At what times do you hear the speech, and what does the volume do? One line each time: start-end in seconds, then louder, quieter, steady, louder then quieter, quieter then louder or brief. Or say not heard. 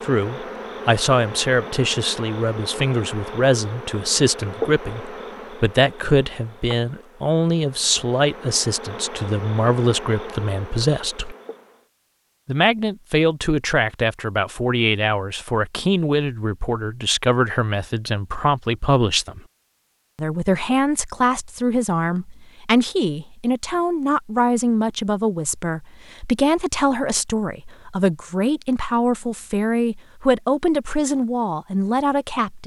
0.0-11.3 steady
12.4-19.4 steady
20.1-32.6 steady.